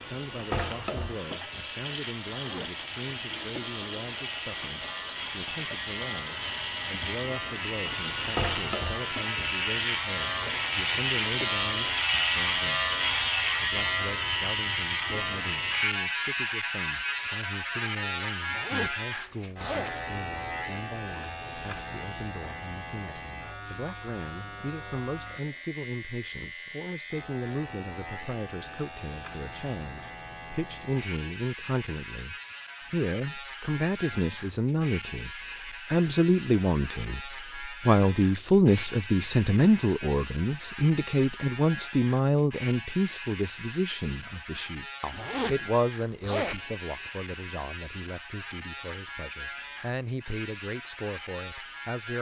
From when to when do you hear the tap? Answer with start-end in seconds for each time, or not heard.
0.0-11.9.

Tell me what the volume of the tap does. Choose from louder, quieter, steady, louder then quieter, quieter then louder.
steady.